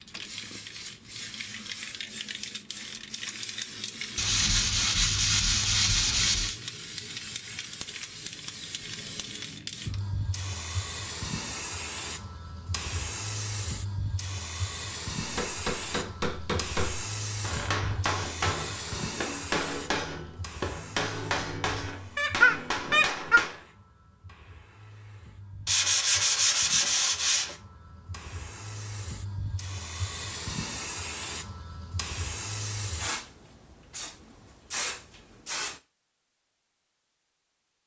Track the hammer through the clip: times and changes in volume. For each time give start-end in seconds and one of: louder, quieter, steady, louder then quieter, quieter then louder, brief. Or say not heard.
15.2-23.6 steady.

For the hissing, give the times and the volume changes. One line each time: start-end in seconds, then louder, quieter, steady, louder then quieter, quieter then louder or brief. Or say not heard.
0.0-35.8 quieter then louder.